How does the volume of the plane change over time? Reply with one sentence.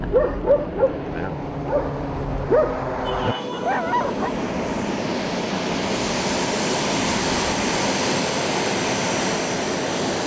The loudness of the plane goes up.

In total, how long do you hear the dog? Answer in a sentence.
The dog can be heard for 4 seconds in total.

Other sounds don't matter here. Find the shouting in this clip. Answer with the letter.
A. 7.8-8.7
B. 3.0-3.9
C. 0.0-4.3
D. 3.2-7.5
B.